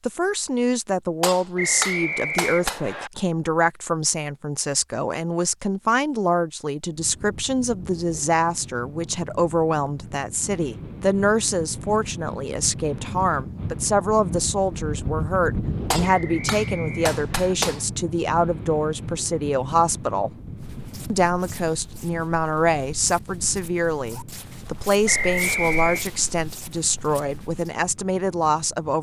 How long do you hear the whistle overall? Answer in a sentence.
The whistle can be heard for 4 seconds in total.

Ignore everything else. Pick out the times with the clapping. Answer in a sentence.
You can hear the clapping from 1.2 to 2.8 s and from 15.9 to 17.9 s.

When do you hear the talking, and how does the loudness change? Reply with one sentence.
You can hear the talking from 0.1 to 20.3 s, at a steady volume; and from 21.1 to 28.9 s, at a steady volume.